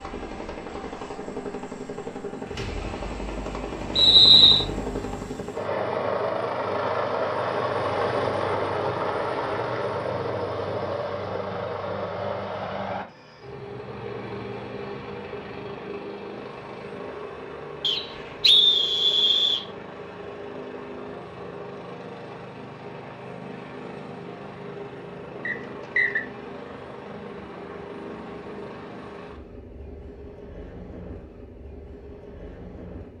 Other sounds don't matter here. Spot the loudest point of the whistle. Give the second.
4 s.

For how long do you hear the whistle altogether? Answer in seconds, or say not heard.
3 s.